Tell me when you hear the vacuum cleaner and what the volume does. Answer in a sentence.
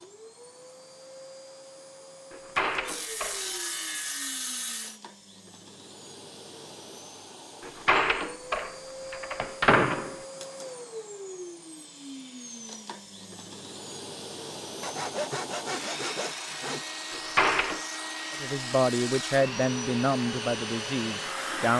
The vacuum cleaner can be heard from 0.0 to 21.7 s, getting louder.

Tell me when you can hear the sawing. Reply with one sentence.
The sawing can be heard from 2.9 to 5.0 s and from 14.8 to 16.9 s.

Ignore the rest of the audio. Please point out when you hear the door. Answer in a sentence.
You can hear the door from 2.3 to 3.5 s, from 7.7 to 10.2 s and from 17.1 to 17.8 s.